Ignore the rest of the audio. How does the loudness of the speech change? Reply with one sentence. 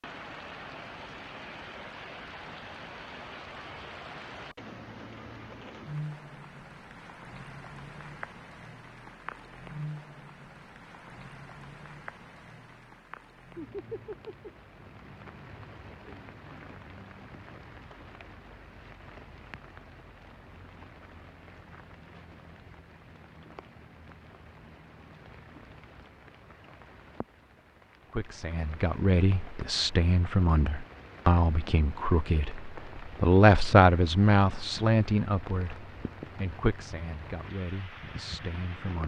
The loudness of the speech goes up, then down.